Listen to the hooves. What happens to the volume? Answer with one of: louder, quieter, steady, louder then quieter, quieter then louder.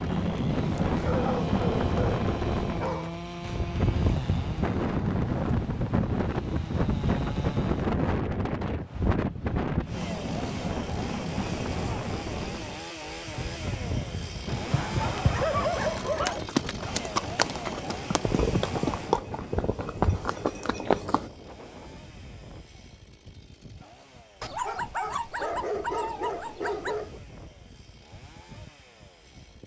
louder.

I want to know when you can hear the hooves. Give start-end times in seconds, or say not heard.
13.1-21.3.